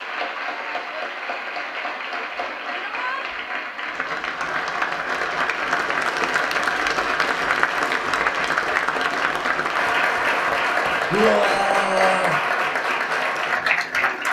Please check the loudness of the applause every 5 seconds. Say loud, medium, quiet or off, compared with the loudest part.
medium, loud, loud.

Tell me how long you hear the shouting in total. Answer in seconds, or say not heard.
2 s.